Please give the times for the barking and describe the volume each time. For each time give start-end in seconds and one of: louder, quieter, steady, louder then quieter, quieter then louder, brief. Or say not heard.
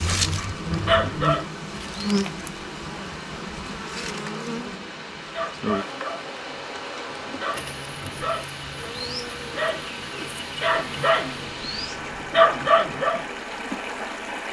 0.0-2.2 brief
5.3-13.2 louder.